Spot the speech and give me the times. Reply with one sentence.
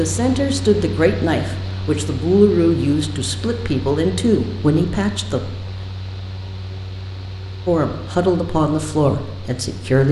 The speech can be heard from 0.0 to 5.5 s and from 7.7 to 10.0 s.